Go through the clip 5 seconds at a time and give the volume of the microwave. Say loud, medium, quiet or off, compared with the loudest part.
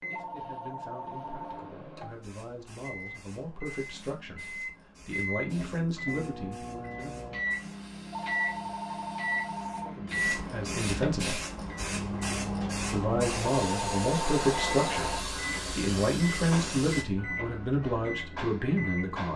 medium, loud, loud, loud.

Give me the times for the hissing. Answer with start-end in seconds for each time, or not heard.
2.0-17.1.